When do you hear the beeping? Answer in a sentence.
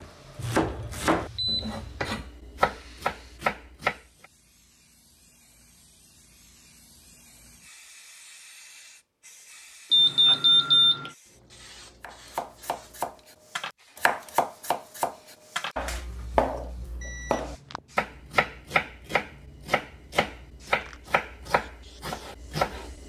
The beeping can be heard from 0.3 to 2.1 s, from 9.9 to 11.1 s and from 17.0 to 17.8 s.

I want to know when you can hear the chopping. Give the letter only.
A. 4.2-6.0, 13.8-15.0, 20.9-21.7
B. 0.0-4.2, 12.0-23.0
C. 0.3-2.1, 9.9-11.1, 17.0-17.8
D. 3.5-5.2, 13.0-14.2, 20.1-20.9
B.